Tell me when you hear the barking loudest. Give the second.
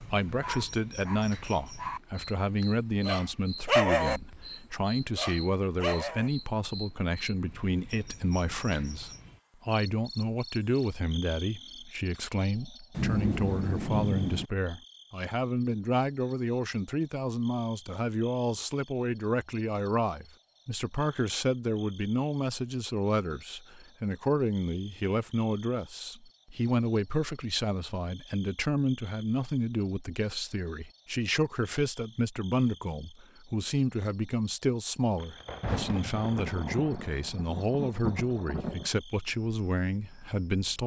4 s.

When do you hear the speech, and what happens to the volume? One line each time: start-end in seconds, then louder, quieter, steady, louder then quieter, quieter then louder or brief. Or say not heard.
0.0-40.8 steady.